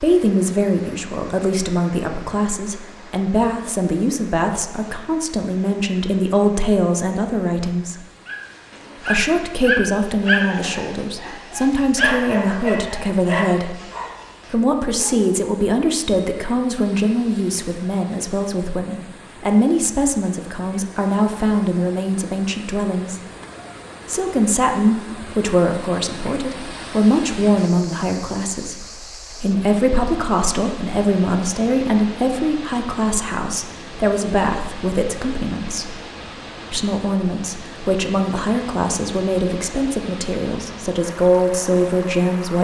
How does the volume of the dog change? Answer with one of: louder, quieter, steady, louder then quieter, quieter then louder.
quieter.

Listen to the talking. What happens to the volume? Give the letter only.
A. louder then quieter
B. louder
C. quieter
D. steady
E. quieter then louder
D.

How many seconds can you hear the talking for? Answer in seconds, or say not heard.
39 s.